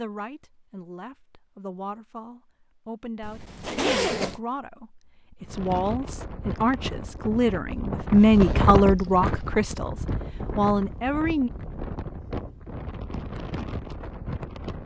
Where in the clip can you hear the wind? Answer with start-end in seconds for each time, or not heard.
5.4-14.8.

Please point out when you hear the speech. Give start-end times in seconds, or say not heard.
0.0-11.5.